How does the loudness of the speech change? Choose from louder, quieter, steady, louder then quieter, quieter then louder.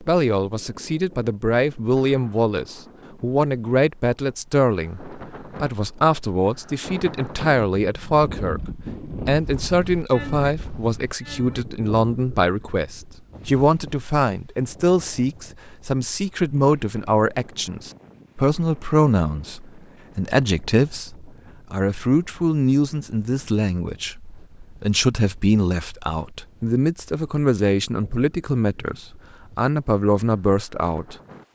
steady.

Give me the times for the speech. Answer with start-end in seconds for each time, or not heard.
0.0-31.5.